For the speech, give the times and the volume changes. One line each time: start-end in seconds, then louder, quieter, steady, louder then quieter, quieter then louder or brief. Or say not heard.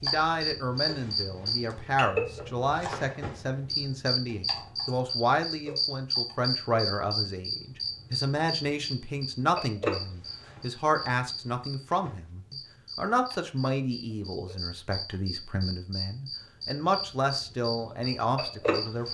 0.0-19.0 steady.